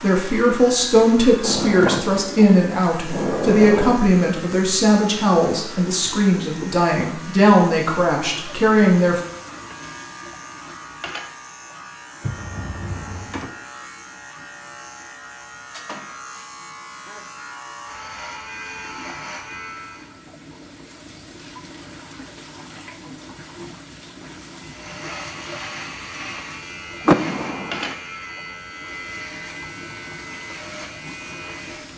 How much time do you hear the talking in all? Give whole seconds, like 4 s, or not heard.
9 s.